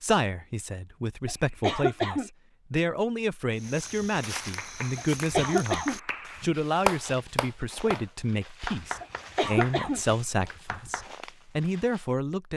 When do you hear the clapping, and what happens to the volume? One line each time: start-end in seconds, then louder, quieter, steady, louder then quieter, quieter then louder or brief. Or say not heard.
4.2-11.1 louder then quieter.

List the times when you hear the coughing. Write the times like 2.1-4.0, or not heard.
1.2-2.3, 5.0-6.5, 9.0-10.0.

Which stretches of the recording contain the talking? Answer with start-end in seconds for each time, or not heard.
0.0-12.5.